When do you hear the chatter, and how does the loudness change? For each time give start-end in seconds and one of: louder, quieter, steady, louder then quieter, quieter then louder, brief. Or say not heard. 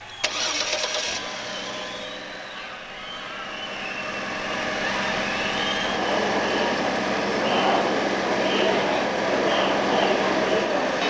0.0-11.0 louder.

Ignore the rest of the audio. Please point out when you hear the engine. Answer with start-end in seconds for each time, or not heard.
0.1-11.0.